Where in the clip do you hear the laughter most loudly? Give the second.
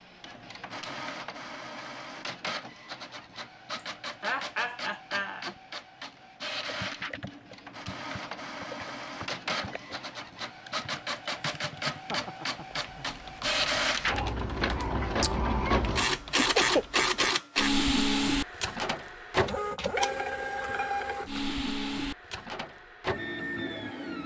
17 s.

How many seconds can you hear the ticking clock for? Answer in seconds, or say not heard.
not heard.